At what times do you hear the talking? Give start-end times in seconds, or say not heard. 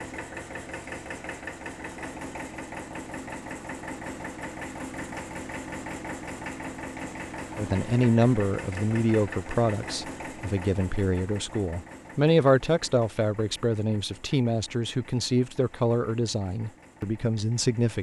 7.5-17.9.